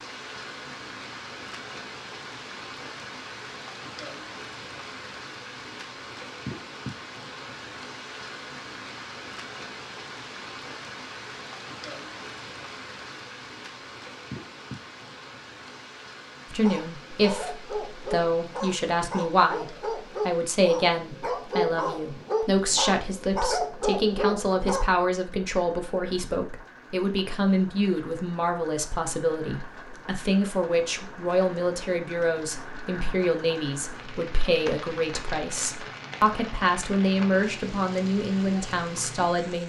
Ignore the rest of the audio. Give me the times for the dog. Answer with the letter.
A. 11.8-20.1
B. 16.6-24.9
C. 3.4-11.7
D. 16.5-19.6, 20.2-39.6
B.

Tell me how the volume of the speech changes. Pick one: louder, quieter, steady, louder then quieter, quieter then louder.
steady.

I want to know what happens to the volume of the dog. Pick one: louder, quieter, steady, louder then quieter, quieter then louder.
louder.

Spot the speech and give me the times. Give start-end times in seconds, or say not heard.
16.5-19.6, 20.2-39.6.